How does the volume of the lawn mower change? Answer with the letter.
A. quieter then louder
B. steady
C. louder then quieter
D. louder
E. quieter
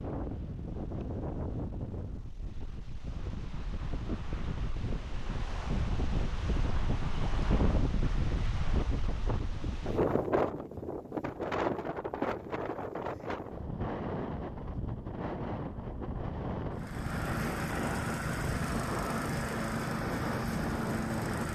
B.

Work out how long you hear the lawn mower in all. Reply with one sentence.
The lawn mower can be heard for 5 seconds in total.